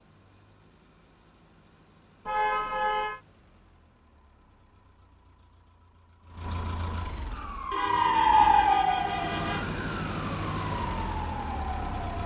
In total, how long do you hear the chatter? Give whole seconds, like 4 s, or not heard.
not heard.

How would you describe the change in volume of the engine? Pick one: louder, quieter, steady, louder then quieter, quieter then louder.
louder.